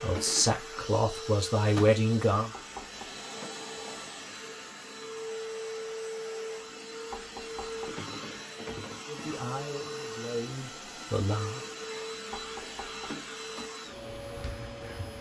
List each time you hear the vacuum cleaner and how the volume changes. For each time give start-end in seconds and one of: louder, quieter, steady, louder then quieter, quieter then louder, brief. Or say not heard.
0.0-15.1 steady.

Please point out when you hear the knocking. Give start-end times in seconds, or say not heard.
2.4-3.2, 7.1-8.1, 12.3-13.2.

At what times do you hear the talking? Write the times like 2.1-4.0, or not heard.
0.0-2.5, 9.1-11.6.